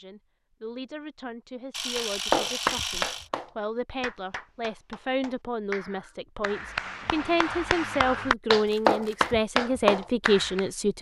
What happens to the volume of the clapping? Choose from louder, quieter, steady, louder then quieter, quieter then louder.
quieter then louder.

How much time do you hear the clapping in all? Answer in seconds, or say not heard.
9 s.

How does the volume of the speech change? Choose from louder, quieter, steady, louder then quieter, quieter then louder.
louder.